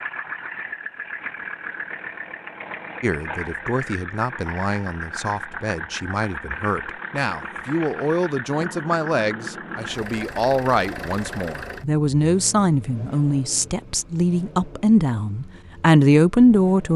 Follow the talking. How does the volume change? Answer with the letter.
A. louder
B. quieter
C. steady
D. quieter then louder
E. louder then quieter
A.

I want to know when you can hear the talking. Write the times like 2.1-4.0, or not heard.
3.0-16.9.